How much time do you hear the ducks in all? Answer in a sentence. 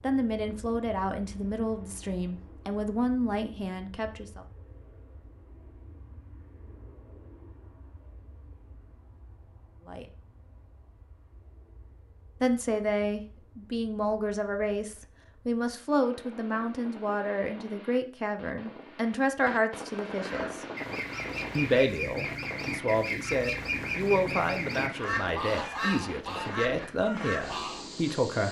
You can hear the ducks for 8 seconds altogether.